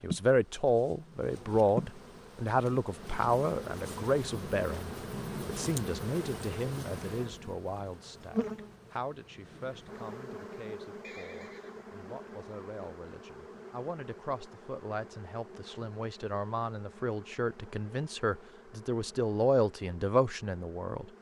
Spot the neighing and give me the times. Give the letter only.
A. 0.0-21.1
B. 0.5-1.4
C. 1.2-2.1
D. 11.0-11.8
D.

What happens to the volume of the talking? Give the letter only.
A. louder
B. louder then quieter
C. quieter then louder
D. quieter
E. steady
C.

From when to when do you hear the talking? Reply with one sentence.
You can hear the talking from 0.0 to 21.1 s.